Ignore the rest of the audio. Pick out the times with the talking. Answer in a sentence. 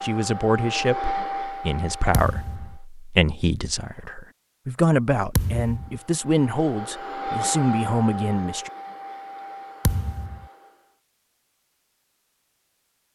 You can hear the talking from 0.0 to 8.7 s.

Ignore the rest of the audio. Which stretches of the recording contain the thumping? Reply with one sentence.
You can hear the thumping from 2.1 to 2.8 s, from 5.3 to 6.0 s and from 9.8 to 10.4 s.